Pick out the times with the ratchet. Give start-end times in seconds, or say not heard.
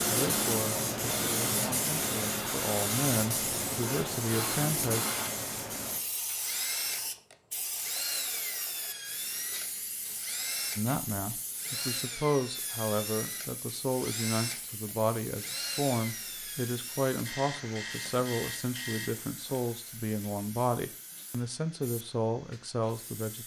not heard.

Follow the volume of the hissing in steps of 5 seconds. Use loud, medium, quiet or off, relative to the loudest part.
loud, medium, quiet, quiet, quiet.